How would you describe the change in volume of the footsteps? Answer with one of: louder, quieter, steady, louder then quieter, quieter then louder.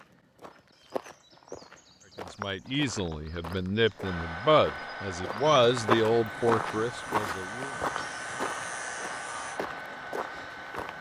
louder then quieter.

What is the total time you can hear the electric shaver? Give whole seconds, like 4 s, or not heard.
3 s.